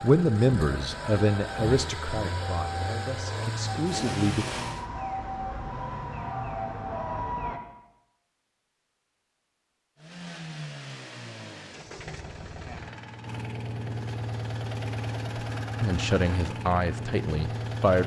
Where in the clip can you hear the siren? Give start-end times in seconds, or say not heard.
0.0-7.6.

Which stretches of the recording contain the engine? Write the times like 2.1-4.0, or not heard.
0.0-4.9, 9.9-18.0.